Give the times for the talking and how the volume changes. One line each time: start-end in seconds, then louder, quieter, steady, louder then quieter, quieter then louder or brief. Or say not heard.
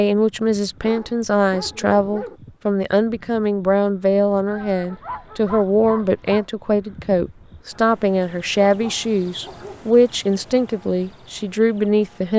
0.0-12.3 steady.